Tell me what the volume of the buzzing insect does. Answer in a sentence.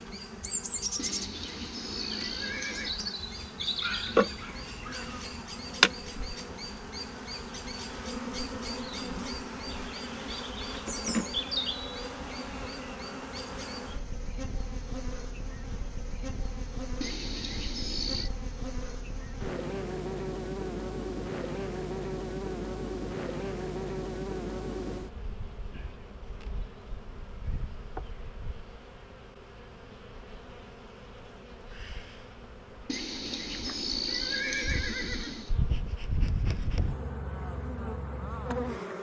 The volume of the buzzing insect goes down.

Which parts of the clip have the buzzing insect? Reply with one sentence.
You can hear the buzzing insect from 0.0 to 38.9 s.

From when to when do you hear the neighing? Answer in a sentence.
The neighing can be heard from 0.9 to 3.0 s, from 17.0 to 18.3 s and from 32.9 to 35.5 s.